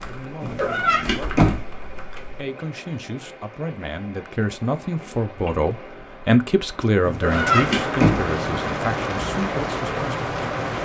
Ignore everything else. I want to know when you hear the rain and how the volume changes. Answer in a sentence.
You can hear the rain from 0.0 to 10.7 s, getting louder.